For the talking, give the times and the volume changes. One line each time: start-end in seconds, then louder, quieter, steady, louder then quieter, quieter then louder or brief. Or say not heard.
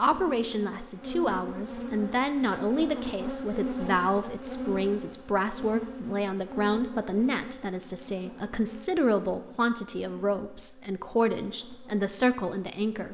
0.0-13.0 steady.